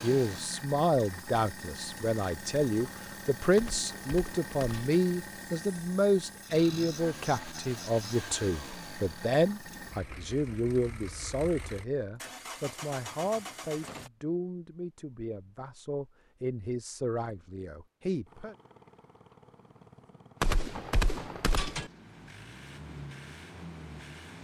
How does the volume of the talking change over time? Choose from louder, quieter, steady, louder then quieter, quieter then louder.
quieter.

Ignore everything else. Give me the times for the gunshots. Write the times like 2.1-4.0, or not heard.
3.5-5.0, 20.4-21.9.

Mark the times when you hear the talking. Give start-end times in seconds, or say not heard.
0.0-18.6.